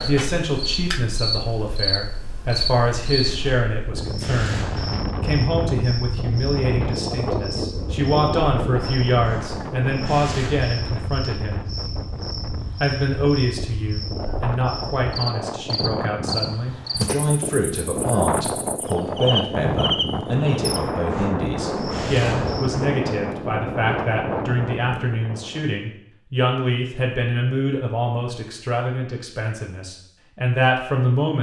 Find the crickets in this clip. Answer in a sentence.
You can hear the crickets from 0.0 to 22.8 s.